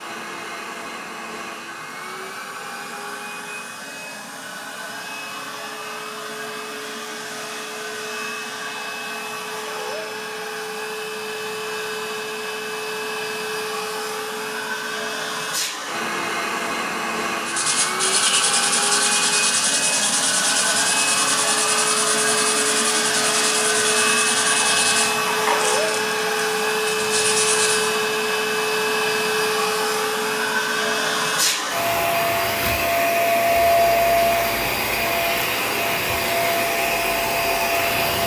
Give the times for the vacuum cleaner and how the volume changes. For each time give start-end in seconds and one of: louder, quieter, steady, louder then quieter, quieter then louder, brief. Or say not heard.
0.0-38.2 louder.